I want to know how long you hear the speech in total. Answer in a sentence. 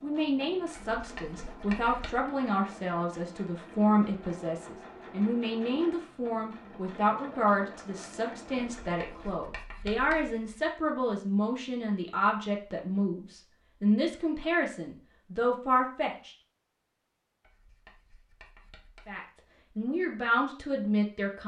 You can hear the speech for 19 seconds altogether.